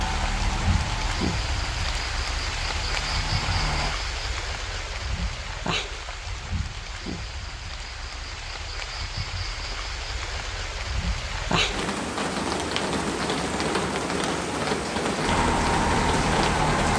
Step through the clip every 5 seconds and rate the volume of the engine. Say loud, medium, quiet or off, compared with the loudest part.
medium, off, off, loud.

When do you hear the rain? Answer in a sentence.
You can hear the rain from 0.0 to 16.9 s.